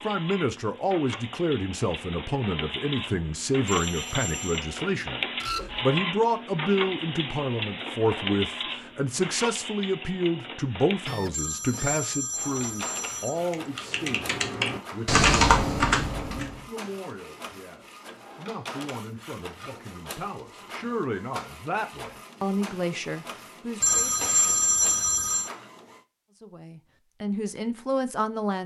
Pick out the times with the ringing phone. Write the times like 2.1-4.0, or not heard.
3.6-4.7, 11.3-13.3, 23.8-25.5.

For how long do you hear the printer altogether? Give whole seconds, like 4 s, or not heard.
26 s.